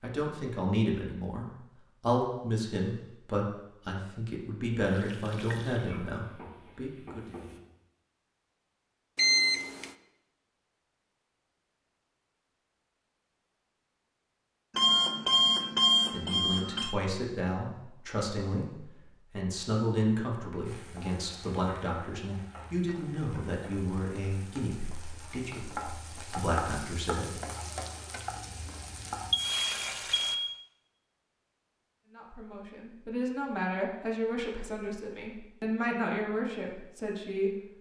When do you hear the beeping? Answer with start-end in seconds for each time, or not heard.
9.2-9.9, 14.8-16.9, 29.3-30.6.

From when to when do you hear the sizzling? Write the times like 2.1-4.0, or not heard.
4.8-7.6, 20.6-30.4.